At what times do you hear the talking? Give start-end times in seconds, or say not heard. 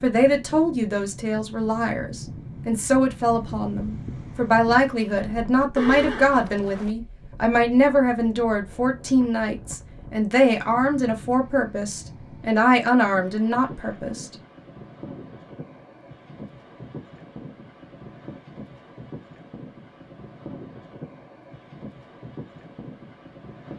0.0-14.3.